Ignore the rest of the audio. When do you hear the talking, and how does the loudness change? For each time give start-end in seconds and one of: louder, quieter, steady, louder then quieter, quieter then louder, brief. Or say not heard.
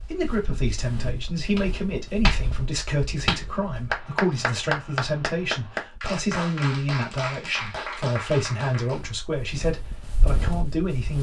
0.0-11.1 steady.